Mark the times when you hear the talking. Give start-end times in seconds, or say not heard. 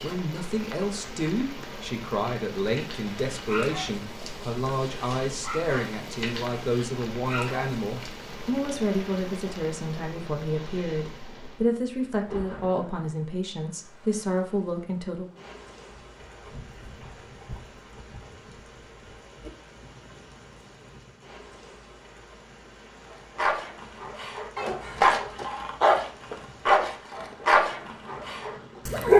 0.0-15.3.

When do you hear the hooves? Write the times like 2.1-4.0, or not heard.
15.8-21.4.